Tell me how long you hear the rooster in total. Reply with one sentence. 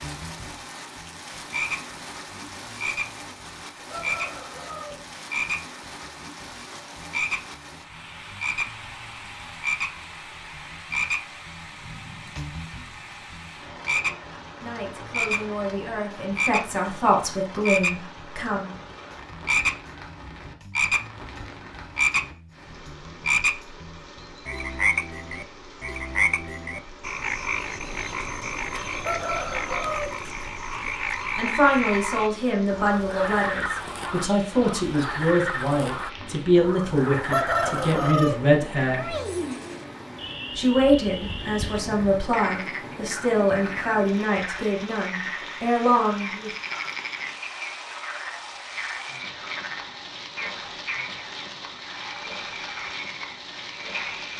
You can hear the rooster for 4 seconds altogether.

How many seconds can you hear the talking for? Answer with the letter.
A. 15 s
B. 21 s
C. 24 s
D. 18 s
D.